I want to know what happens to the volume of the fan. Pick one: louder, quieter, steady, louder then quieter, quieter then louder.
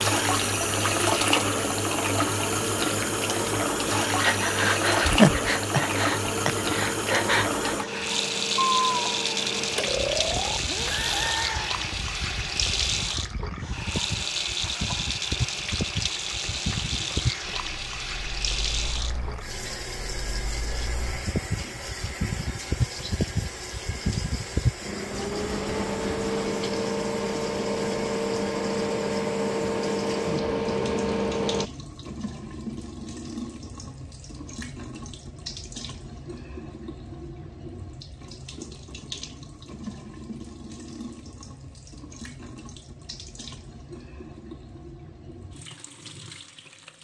louder.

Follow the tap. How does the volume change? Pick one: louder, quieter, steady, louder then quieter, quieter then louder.
quieter.